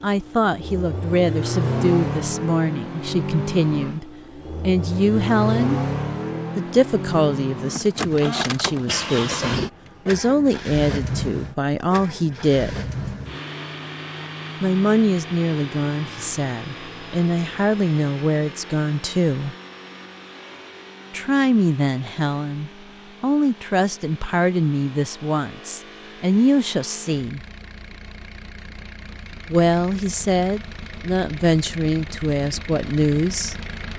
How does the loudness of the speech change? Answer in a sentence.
The volume of the speech stays about the same.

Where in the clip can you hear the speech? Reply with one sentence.
You can hear the speech from 0.0 to 5.8 s, from 6.5 to 12.8 s, from 14.6 to 19.6 s, from 21.1 to 27.4 s and from 29.4 to 33.5 s.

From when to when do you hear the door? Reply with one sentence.
You can't hear the door here.